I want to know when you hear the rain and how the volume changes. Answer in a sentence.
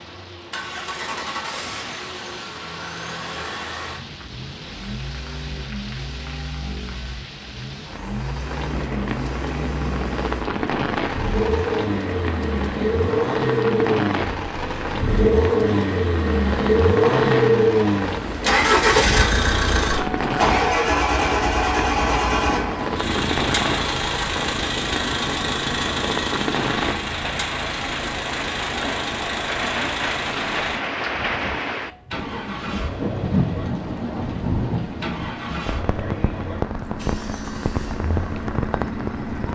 You can hear the rain from 0.0 to 39.4 s, getting louder.